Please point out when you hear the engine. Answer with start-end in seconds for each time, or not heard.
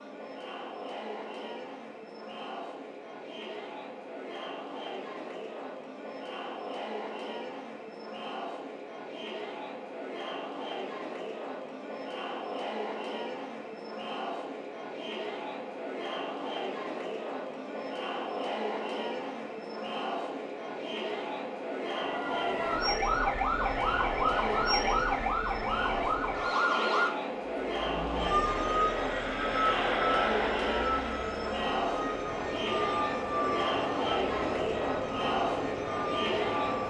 28.6-36.8.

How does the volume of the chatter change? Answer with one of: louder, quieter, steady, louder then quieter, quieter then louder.
louder.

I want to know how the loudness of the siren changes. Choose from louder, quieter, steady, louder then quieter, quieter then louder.
quieter.